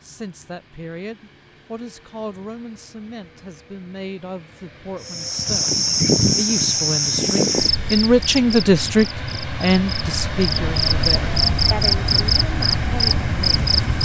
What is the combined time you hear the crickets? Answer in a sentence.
You can hear the crickets for 9 seconds altogether.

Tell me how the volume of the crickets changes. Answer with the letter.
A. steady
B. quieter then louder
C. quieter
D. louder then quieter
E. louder
B.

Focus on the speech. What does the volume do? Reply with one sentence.
The volume of the speech goes up, then down.